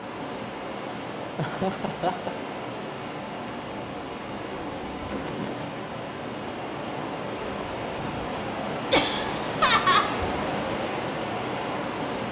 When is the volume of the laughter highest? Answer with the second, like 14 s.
10 s.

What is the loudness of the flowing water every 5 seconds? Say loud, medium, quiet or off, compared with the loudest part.
medium, loud, loud.